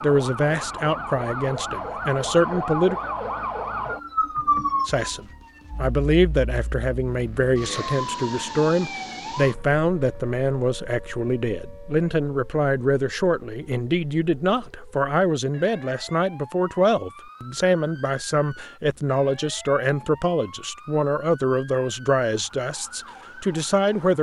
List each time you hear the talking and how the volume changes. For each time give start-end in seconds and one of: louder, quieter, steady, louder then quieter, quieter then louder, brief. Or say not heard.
0.0-3.0 brief
4.8-24.1 steady.